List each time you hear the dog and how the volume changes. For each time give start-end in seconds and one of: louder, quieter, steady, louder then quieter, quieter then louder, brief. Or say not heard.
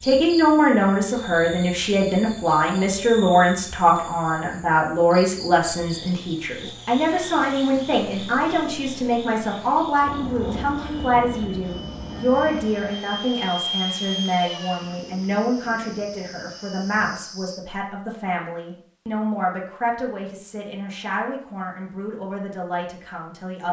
not heard.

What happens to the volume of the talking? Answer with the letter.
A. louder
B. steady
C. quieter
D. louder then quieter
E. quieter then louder
C.